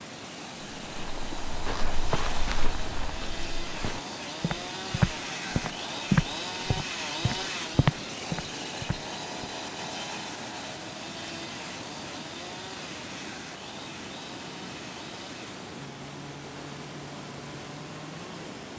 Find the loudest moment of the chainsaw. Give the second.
7 s.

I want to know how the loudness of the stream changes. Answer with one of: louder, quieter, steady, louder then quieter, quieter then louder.
steady.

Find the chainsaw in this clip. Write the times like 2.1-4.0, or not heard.
0.0-18.7.